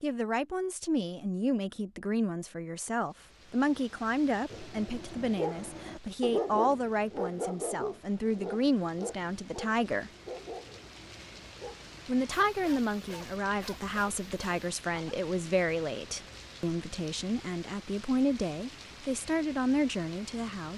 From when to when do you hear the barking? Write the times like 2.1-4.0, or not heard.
4.5-15.2.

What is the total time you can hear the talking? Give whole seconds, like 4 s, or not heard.
19 s.